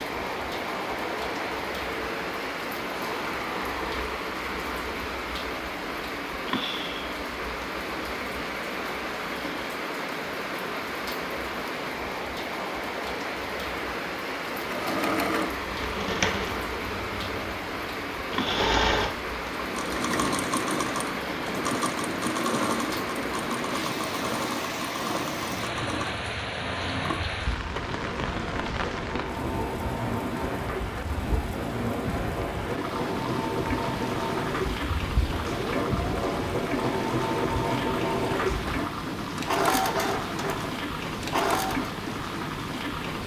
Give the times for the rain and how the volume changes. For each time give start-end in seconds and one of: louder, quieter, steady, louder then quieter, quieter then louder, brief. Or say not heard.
0.0-43.2 steady.